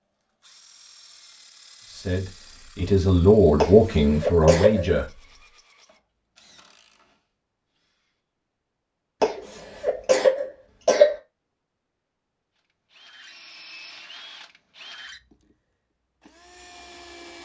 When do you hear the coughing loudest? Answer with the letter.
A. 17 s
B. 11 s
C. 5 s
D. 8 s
B.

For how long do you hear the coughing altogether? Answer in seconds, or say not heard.
3 s.